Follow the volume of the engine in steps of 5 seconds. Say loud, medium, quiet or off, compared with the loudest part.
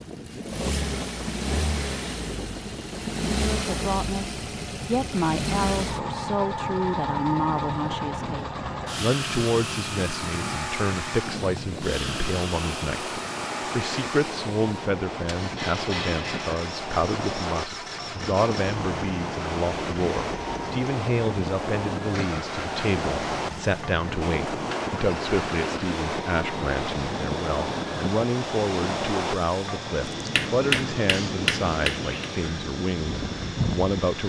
loud, loud, loud, medium, medium, medium, medium.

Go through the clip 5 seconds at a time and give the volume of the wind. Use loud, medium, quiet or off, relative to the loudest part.
medium, medium, medium, loud, loud, loud, loud.